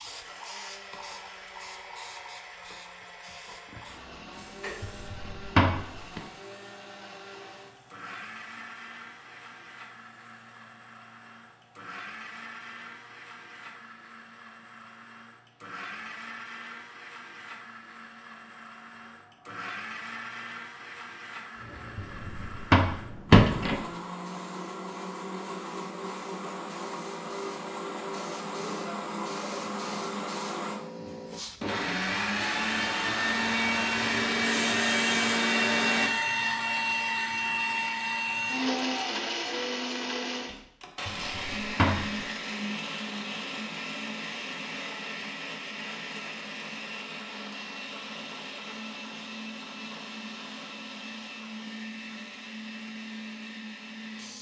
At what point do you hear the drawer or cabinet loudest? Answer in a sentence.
The loudest moment of the drawer or cabinet is at 23 seconds.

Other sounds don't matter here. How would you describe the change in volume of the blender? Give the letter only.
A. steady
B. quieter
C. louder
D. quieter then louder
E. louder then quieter
E.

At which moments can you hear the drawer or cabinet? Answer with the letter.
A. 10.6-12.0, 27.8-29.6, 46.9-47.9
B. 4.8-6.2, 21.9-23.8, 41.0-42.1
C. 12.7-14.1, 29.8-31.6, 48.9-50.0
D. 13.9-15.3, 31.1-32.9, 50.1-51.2
B.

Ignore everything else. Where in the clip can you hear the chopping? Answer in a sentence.
The chopping can't be heard in this clip.